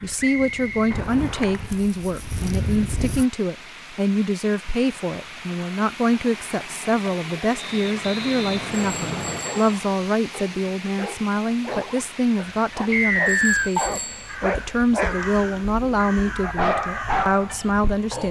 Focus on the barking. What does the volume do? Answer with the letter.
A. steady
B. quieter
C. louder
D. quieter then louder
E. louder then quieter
C.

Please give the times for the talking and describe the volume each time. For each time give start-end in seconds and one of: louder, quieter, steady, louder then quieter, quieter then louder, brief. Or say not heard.
0.0-18.2 steady.